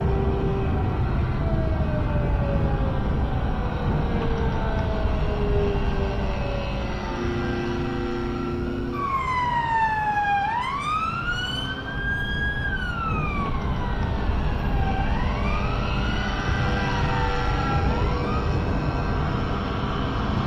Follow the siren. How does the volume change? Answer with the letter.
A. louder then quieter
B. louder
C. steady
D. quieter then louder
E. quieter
A.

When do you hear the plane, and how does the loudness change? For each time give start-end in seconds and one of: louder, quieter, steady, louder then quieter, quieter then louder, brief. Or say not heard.
0.0-20.4 quieter then louder.